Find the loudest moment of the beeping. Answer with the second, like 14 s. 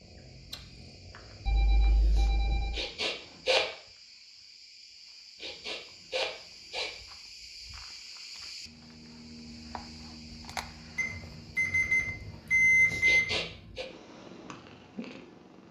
13 s.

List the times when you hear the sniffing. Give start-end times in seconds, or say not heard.
2.8-3.6, 5.4-6.9, 13.0-13.8.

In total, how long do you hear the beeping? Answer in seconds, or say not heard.
4 s.